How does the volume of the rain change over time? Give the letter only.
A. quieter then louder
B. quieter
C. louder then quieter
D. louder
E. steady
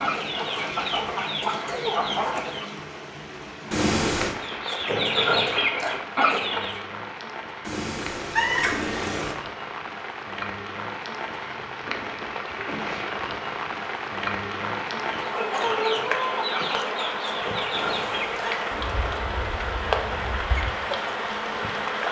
D.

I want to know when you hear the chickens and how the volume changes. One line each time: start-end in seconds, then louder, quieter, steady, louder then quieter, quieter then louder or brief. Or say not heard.
0.0-2.8 brief
4.4-6.8 brief
15.2-21.1 quieter.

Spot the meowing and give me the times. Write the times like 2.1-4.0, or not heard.
3.7-4.3, 7.7-9.3, 17.7-18.8.